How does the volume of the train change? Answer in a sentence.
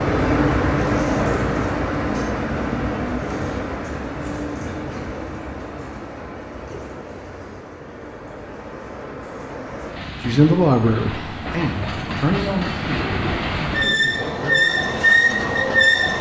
The loudness of the train goes down, then up.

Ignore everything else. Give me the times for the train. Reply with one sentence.
You can hear the train from 0.0 to 16.1 s.